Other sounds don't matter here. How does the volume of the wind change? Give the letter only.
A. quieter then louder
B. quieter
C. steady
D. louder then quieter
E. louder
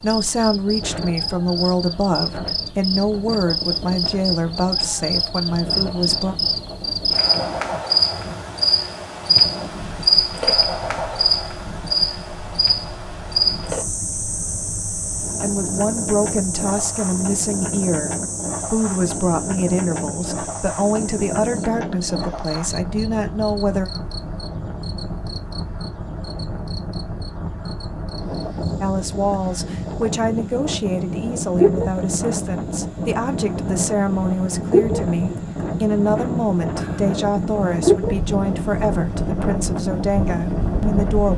E.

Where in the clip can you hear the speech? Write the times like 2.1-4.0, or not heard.
0.0-6.3, 15.4-23.9, 28.8-41.3.